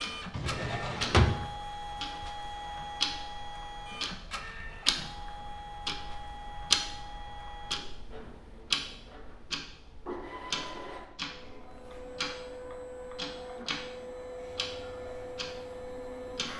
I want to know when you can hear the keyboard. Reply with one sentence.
The keyboard can't be heard in this clip.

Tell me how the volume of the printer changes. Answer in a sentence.
The loudness of the printer goes down, then up.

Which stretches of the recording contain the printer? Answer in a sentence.
The printer can be heard from 0.0 to 16.5 s.